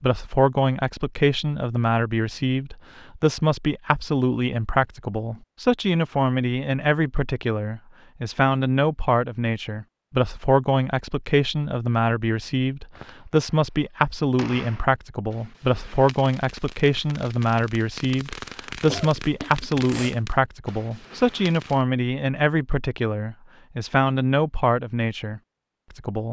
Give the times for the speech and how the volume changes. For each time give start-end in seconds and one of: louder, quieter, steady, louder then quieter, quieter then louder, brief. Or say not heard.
0.0-26.2 steady.